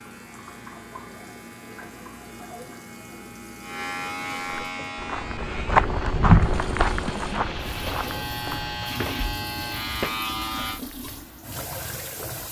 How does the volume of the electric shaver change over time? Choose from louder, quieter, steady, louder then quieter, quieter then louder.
louder.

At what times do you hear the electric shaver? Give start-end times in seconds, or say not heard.
0.0-10.8.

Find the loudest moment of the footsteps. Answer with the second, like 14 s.
6 s.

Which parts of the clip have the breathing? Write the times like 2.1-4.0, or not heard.
not heard.